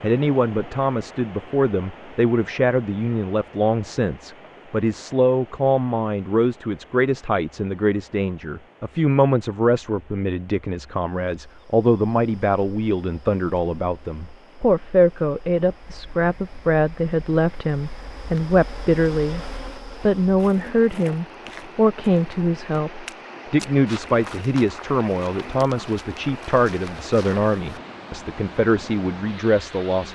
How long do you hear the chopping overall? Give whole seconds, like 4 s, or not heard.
not heard.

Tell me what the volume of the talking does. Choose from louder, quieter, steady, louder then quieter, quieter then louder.
steady.